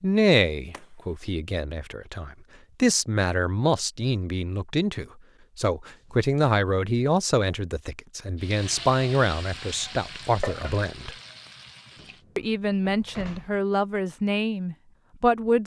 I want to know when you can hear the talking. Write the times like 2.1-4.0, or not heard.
0.0-11.2, 12.3-15.6.